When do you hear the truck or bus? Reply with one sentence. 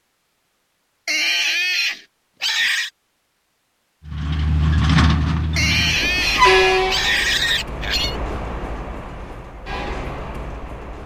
The truck or bus can be heard from 4.0 to 11.0 s.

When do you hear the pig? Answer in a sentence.
You can hear the pig from 1.1 to 2.9 s and from 5.5 to 8.2 s.